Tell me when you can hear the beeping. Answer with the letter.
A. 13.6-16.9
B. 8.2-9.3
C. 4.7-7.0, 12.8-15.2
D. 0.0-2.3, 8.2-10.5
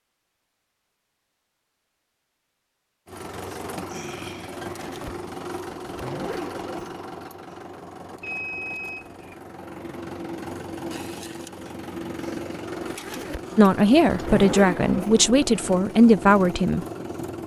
B.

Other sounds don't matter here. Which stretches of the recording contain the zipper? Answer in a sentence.
The zipper can be heard from 4.7 to 7.0 s and from 12.8 to 15.2 s.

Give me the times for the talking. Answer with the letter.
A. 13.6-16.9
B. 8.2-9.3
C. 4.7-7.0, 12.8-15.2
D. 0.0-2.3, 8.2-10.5
A.